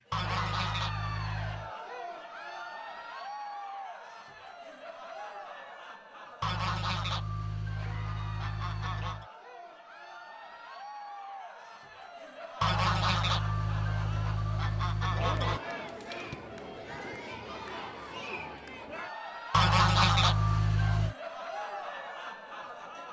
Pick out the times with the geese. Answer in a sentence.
You can hear the geese from 0.1 to 1.7 s, from 6.4 to 9.2 s, from 12.6 to 15.6 s and from 19.5 to 21.1 s.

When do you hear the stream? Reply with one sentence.
You can't hear the stream here.